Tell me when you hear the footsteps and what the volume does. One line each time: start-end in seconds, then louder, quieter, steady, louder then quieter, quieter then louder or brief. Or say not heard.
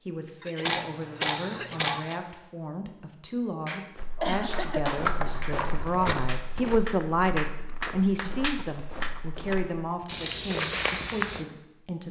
4.0-11.4 quieter then louder.